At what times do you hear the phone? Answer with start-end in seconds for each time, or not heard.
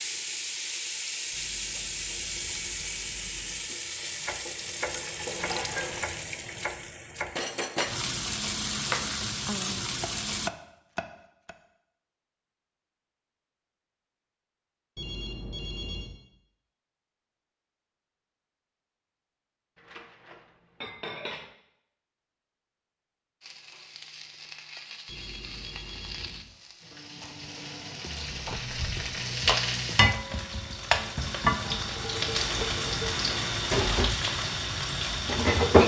1.3-3.7, 14.9-16.1, 25.1-26.4.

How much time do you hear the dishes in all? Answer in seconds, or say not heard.
4 s.